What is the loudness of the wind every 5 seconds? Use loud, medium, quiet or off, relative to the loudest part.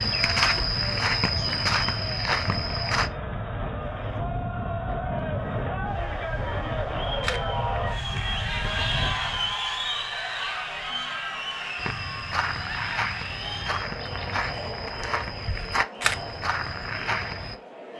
loud, loud, off, off.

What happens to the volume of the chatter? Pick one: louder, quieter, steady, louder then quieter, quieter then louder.
louder then quieter.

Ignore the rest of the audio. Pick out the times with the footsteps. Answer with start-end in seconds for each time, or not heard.
0.0-3.1, 11.8-17.6.